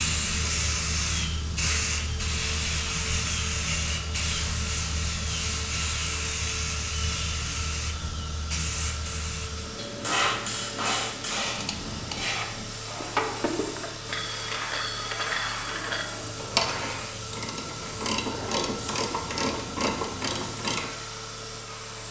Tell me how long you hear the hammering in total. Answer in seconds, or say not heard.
2 s.